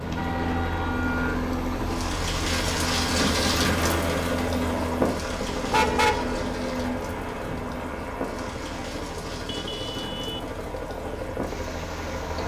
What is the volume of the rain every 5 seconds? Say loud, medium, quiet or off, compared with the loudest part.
loud, medium, medium.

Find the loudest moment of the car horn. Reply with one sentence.
The volume of the car horn peaks at 6 seconds.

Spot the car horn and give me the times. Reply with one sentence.
You can hear the car horn from 0.1 to 1.4 s, from 5.7 to 6.5 s and from 9.4 to 10.4 s.